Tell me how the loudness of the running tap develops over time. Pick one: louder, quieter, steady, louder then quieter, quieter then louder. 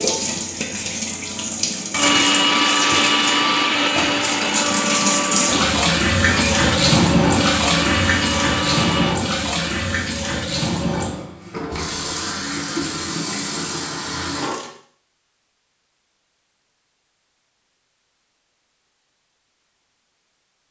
louder then quieter.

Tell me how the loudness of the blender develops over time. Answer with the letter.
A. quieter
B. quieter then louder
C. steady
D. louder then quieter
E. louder
A.